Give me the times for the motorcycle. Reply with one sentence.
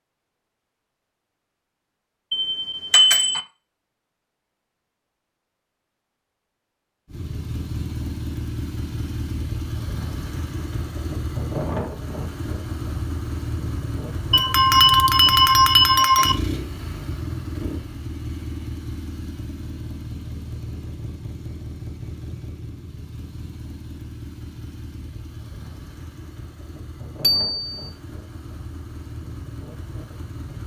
You can hear the motorcycle from 7.0 to 30.6 s.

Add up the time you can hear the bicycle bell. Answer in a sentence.
The bicycle bell can be heard for 4 seconds in total.